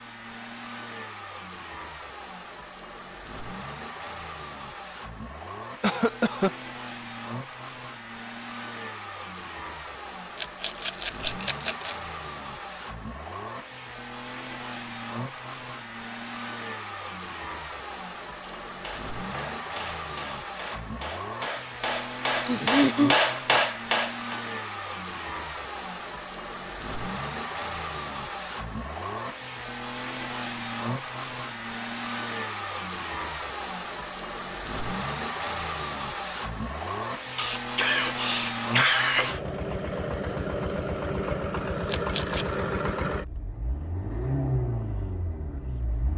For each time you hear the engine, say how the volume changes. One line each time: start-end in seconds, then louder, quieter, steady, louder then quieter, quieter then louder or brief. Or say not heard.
0.0-46.1 louder.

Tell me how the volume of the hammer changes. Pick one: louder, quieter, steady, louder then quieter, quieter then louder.
louder.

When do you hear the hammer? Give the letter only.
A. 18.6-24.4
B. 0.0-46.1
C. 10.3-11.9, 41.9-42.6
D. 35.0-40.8
A.